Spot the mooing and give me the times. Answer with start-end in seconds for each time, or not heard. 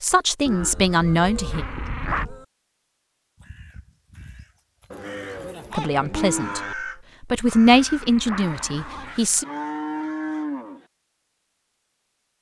0.5-2.5, 4.9-6.8, 9.4-10.8.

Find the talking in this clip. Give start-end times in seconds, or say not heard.
0.0-1.6, 5.7-6.6, 7.2-9.4.